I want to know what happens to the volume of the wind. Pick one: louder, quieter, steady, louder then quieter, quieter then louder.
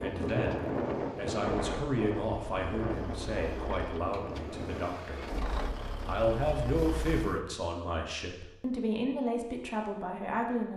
quieter.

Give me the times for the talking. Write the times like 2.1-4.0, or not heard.
0.0-5.2, 6.0-10.7.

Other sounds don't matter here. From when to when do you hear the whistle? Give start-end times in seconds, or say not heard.
not heard.